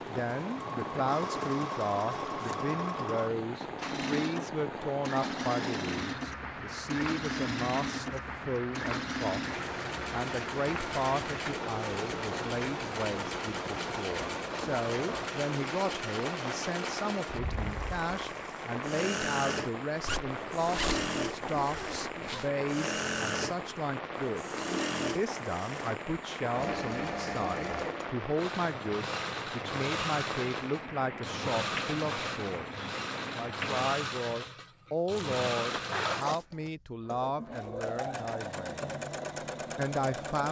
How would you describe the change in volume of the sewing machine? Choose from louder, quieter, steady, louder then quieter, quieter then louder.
steady.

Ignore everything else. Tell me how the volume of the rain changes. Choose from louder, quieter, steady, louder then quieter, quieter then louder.
steady.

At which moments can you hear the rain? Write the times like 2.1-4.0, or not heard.
0.0-33.9.